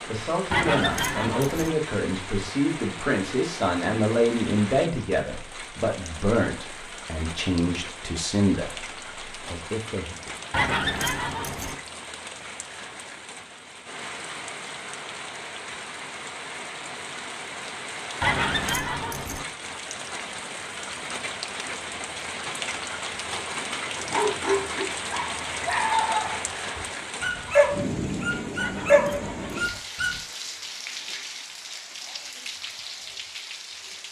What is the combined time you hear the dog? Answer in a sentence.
You can hear the dog for 6 seconds altogether.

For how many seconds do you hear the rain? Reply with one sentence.
You can hear the rain for 34 seconds altogether.